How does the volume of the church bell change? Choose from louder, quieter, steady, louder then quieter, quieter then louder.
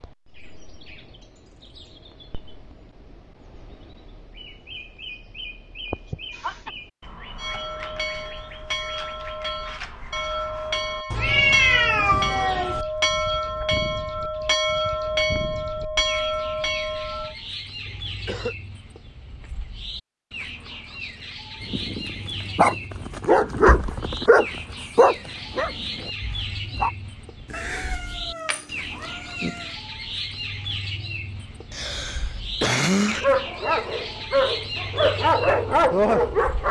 louder.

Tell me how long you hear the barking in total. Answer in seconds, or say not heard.
9 s.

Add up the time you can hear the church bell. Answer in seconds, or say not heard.
10 s.